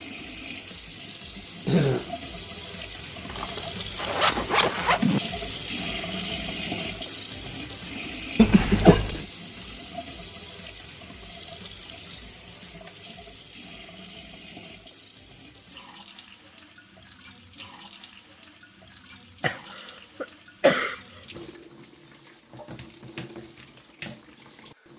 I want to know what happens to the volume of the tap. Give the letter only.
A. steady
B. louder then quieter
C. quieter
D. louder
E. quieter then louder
C.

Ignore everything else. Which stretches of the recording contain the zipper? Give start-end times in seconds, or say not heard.
3.2-5.2.